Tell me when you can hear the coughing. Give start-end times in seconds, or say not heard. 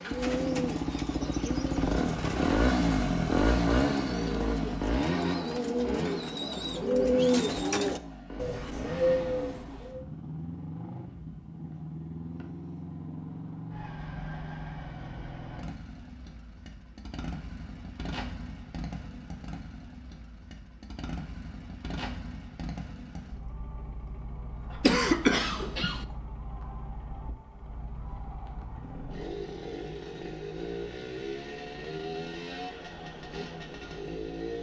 24.8-26.1.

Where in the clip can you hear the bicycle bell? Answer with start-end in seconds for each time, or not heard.
not heard.